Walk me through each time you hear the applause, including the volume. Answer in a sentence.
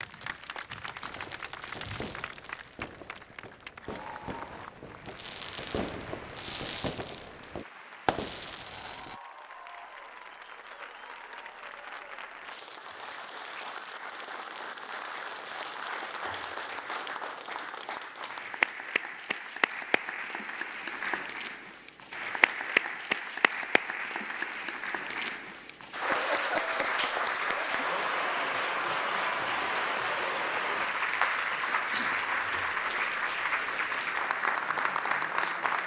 The applause can be heard from 0.0 to 35.8 s, getting louder.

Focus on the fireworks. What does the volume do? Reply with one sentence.
The volume of the fireworks goes up.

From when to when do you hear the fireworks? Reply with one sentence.
The fireworks can be heard from 1.0 to 9.2 s.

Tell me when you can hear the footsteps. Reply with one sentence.
You can't hear the footsteps here.